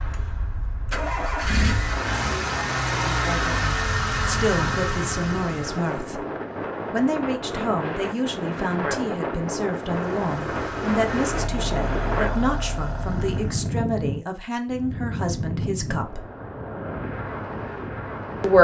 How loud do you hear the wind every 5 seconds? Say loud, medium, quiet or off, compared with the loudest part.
medium, loud, loud, loud.